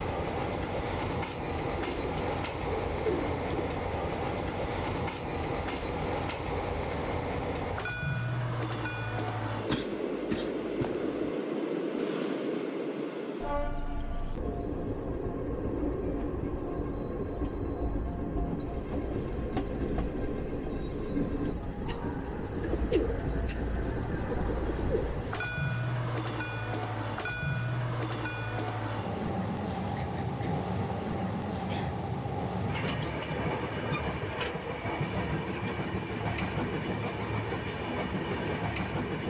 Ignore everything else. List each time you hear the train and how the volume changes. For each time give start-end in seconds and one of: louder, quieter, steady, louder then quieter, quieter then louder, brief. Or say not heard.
0.0-39.2 steady.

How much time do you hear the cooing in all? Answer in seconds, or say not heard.
4 s.